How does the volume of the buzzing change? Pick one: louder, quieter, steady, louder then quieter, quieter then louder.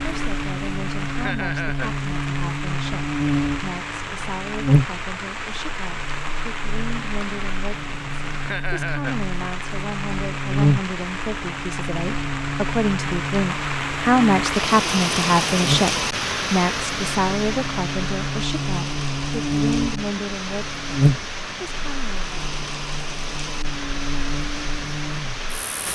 quieter then louder.